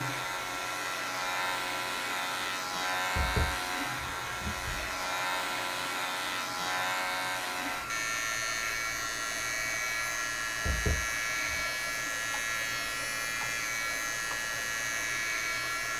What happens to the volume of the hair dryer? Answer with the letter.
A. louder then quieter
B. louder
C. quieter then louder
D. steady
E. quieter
D.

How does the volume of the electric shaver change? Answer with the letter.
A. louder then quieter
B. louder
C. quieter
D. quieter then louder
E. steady
E.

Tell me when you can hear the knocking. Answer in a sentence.
The knocking can be heard from 3.1 to 5.0 s and from 10.7 to 11.7 s.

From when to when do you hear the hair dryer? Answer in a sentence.
The hair dryer can be heard from 0.0 to 15.9 s.